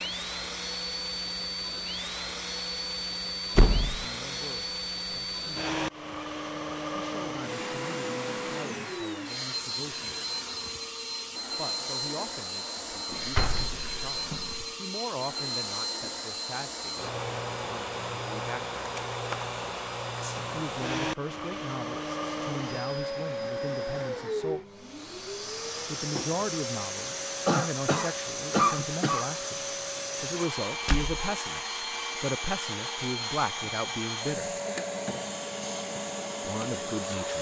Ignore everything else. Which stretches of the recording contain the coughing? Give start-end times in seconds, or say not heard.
27.4-29.3.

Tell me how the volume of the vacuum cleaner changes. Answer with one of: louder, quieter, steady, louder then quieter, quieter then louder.
steady.